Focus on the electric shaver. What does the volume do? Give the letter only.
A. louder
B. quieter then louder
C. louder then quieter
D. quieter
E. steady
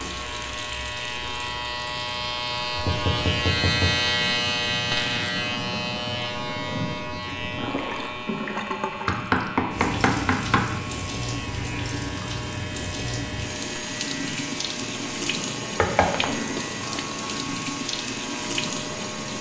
D.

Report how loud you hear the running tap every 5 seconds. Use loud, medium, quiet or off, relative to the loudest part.
medium, loud, loud, loud.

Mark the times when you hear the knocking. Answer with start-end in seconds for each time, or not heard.
2.8-4.0, 9.1-10.7, 15.8-16.3.